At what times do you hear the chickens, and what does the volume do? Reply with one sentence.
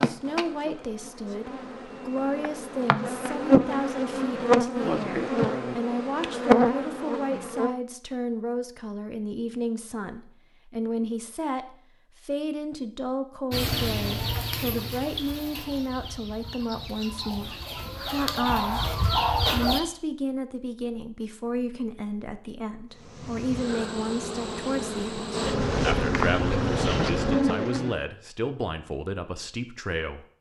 You can hear the chickens from 13.5 to 19.8 s, getting quieter then louder.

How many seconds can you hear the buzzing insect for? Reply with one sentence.
You can hear the buzzing insect for 13 seconds altogether.